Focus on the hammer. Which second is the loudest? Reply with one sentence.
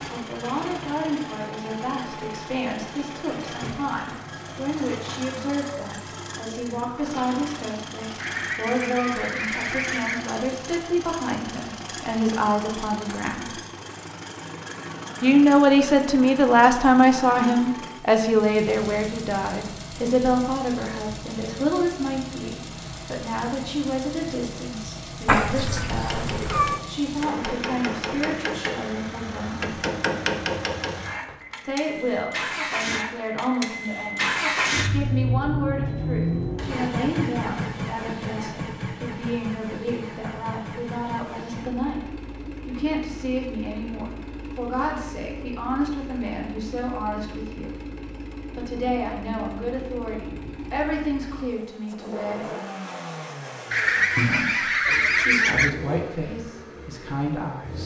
The volume of the hammer peaks at 30 seconds.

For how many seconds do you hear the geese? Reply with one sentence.
The geese can be heard for 4 seconds in total.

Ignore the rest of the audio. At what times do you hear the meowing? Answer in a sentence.
You can hear the meowing from 25.2 to 26.8 s.